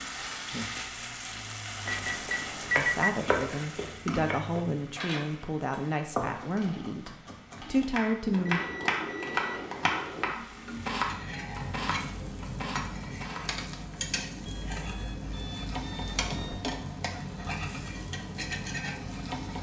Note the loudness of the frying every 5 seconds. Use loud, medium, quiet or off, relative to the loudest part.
loud, medium, loud, loud.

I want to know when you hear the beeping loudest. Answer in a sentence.
The loudest moment of the beeping is at 3 seconds.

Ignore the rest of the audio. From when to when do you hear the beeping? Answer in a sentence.
The beeping can be heard from 1.9 to 3.1 s, from 8.3 to 10.3 s and from 14.4 to 16.6 s.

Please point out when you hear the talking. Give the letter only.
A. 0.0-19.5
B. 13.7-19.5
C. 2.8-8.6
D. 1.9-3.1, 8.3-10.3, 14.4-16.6
C.